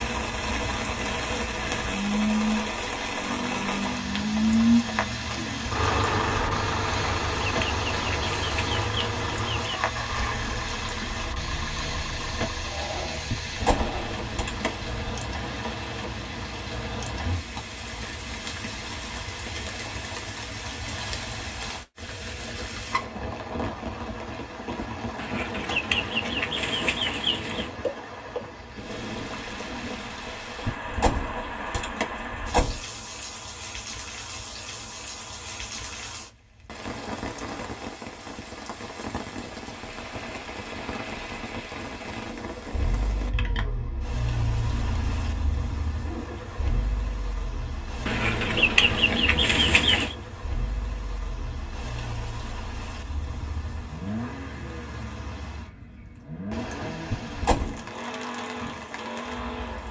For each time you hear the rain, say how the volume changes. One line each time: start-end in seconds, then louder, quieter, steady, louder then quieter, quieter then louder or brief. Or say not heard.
0.0-59.8 quieter.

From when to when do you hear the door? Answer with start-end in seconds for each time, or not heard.
13.2-14.8, 30.6-32.8, 57.1-57.8.